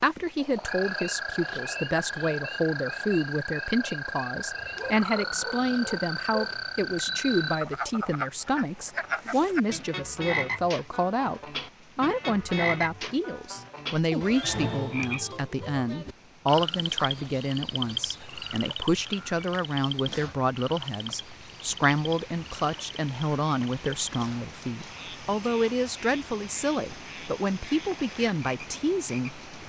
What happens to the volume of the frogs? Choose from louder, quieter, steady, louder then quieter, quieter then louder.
quieter.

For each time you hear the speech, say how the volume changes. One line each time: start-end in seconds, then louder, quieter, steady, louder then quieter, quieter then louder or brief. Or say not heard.
0.0-29.4 steady.